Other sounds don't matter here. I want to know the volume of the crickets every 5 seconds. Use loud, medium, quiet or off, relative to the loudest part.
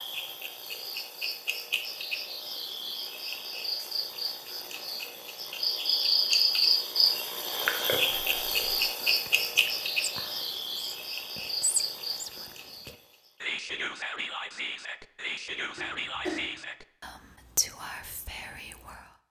medium, loud, medium, off.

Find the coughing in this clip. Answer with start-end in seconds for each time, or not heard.
15.8-16.6.